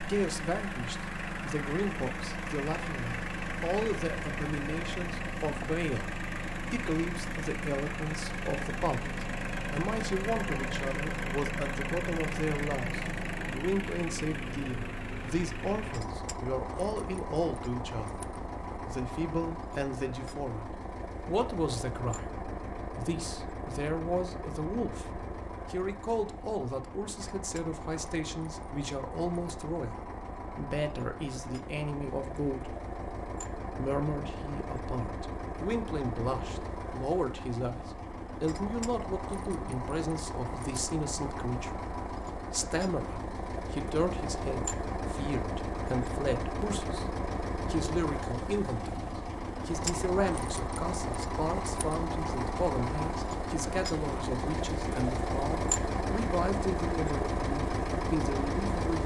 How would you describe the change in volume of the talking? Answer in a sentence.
The volume of the talking stays about the same.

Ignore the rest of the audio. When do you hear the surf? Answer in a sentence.
The surf can't be heard in this clip.